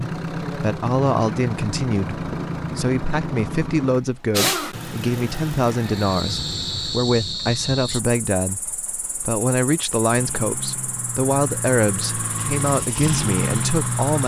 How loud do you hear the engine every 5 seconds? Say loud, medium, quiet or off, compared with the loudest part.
loud, medium, loud.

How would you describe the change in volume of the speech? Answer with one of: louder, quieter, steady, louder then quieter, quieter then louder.
steady.